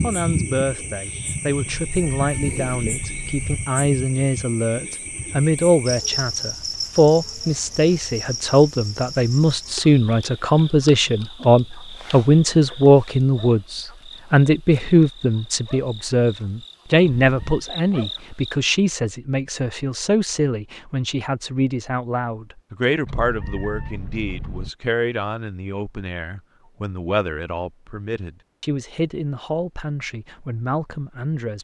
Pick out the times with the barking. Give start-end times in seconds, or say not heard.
not heard.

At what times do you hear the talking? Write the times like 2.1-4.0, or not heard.
0.0-31.5.